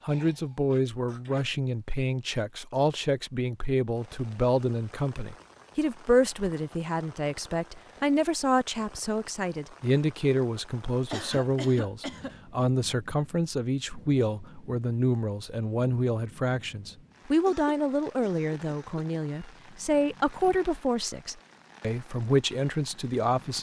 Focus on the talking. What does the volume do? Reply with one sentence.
The volume of the talking stays about the same.